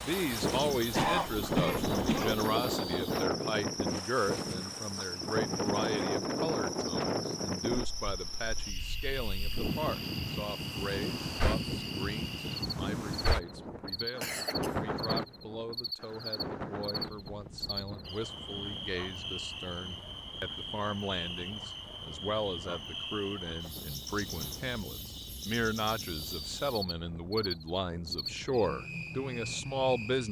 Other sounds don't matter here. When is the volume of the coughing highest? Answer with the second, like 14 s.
1 s.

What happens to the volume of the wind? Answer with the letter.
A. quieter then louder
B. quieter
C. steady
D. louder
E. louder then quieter
B.